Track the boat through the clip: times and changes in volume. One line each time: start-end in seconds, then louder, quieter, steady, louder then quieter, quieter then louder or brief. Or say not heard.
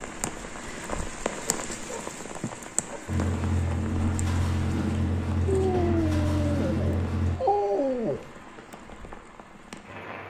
3.0-7.4 steady.